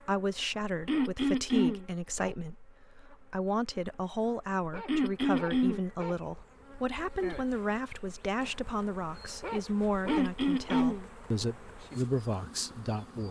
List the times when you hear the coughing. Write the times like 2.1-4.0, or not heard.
0.8-1.9, 4.8-5.8, 10.1-11.1.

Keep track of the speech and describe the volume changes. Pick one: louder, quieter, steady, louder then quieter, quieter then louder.
steady.